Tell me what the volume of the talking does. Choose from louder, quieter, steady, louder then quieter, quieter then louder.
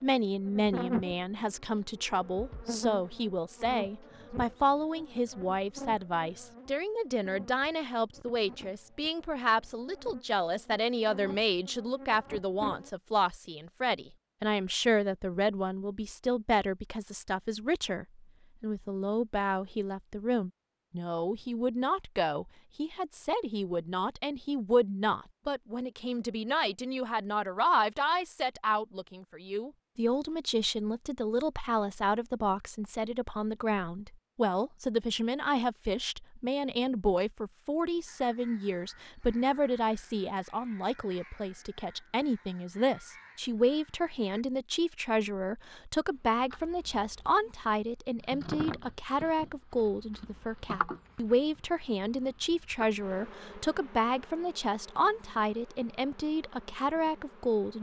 steady.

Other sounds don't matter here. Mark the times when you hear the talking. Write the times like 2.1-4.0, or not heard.
0.0-57.7.